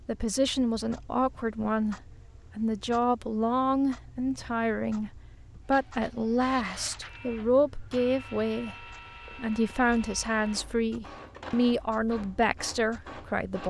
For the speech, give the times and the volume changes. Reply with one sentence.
The speech can be heard from 0.1 to 13.6 s, at a steady volume.